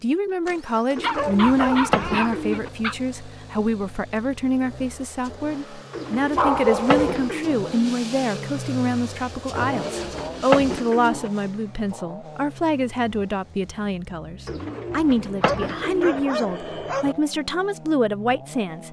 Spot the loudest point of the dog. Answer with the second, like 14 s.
7 s.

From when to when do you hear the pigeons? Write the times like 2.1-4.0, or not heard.
0.9-2.7, 5.9-7.6, 9.6-11.3, 14.4-16.2.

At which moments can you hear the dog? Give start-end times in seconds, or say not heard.
1.0-3.0, 6.3-7.3, 15.4-17.1.